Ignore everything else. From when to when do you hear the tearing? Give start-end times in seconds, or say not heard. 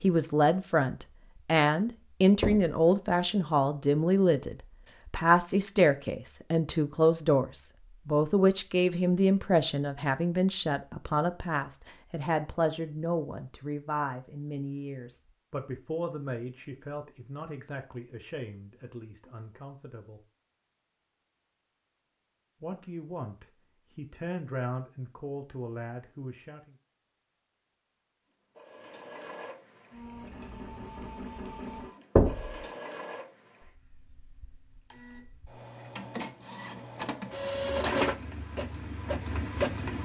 not heard.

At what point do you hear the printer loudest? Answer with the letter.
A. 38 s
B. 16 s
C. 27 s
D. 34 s
A.